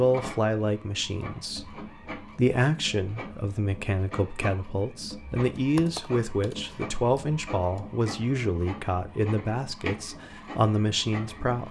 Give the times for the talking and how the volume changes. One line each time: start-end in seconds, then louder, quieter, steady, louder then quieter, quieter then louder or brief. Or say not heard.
0.0-11.6 steady.